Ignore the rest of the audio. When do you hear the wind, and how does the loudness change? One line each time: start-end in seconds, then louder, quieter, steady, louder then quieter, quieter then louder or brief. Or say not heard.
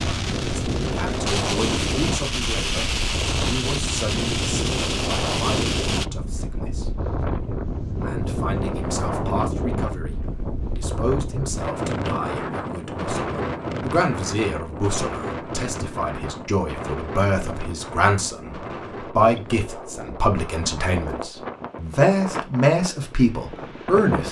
0.0-24.2 quieter.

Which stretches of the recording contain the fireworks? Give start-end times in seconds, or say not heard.
0.0-6.0.